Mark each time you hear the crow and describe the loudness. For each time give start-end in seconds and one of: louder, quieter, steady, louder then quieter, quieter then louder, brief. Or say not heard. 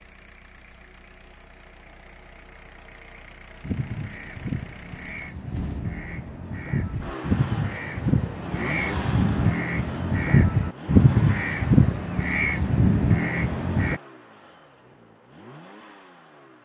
3.6-14.0 louder.